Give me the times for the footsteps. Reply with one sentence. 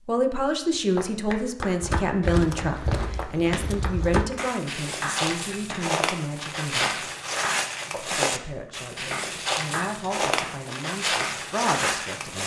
You can hear the footsteps from 1.8 to 12.4 s.